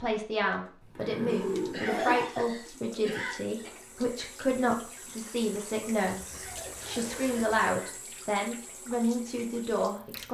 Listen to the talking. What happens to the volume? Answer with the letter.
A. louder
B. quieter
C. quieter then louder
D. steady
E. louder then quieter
D.